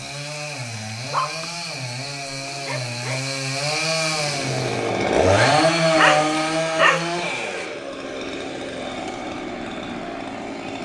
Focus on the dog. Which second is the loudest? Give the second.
6 s.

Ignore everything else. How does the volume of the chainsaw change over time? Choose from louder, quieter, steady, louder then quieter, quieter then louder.
louder then quieter.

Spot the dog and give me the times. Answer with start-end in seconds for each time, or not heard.
0.7-3.2, 6.0-7.1.